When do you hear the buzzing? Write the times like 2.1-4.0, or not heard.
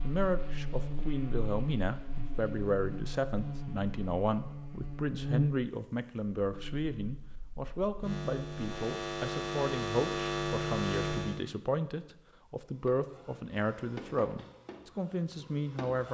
0.0-11.4.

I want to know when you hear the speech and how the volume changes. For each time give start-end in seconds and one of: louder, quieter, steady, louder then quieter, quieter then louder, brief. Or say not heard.
0.0-16.0 steady.